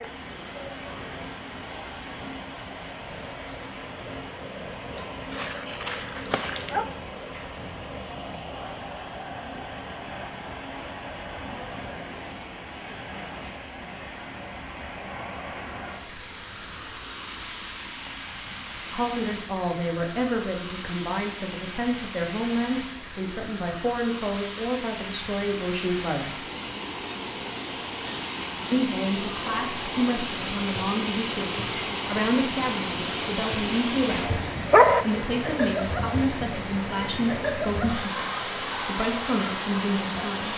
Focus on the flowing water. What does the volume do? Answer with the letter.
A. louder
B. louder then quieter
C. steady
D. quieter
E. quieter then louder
A.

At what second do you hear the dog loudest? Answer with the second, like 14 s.
35 s.